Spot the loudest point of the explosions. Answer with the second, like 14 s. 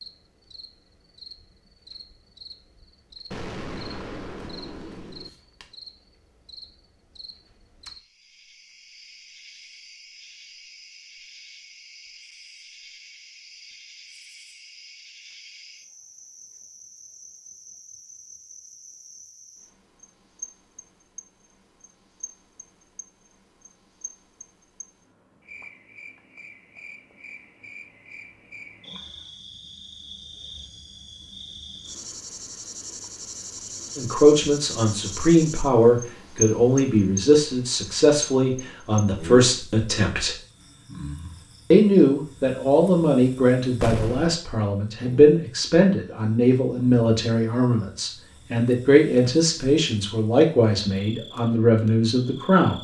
44 s.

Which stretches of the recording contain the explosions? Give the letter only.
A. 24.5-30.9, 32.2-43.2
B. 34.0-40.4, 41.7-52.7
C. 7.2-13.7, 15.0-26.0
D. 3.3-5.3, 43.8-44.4
D.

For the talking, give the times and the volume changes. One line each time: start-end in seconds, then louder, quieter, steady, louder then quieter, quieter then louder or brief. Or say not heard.
34.0-40.4 steady
41.7-52.7 steady.